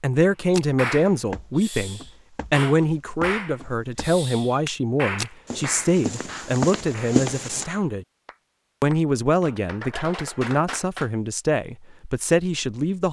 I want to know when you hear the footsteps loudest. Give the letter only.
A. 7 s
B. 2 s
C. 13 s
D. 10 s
A.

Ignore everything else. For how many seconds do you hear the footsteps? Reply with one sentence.
You can hear the footsteps for 7 seconds altogether.